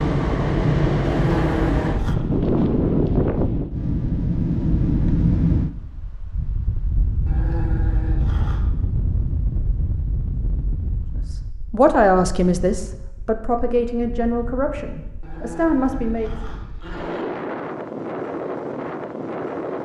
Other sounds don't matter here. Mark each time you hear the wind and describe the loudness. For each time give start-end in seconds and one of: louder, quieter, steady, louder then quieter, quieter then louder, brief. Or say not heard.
0.0-19.8 quieter then louder.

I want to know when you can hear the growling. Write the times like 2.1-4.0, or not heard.
1.1-2.1, 7.2-8.7, 15.2-17.2.